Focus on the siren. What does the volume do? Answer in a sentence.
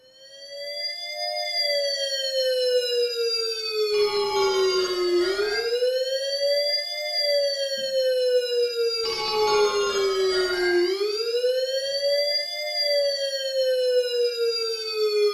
The loudness of the siren stays about the same.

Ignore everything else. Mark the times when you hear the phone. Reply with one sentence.
The phone can be heard from 3.9 to 5.7 s and from 9.0 to 10.8 s.